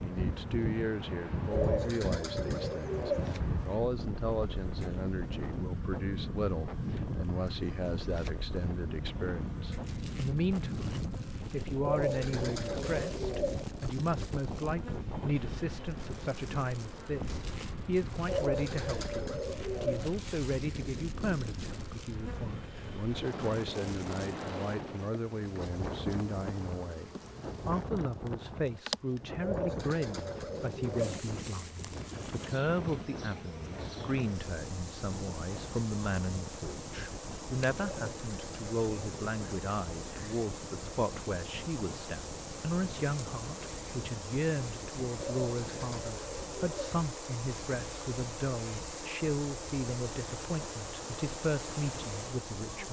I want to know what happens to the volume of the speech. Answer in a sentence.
The loudness of the speech stays about the same.